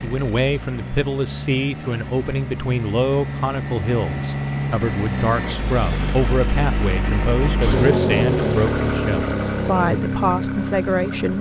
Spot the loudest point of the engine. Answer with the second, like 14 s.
8 s.